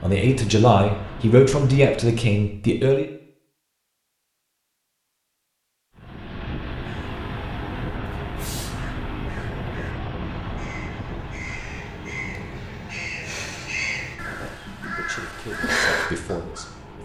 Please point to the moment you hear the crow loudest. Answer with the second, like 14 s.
16 s.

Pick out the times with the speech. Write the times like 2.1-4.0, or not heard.
0.0-3.0, 14.9-16.9.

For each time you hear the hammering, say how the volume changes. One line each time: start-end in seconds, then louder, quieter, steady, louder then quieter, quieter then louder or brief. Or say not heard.
not heard.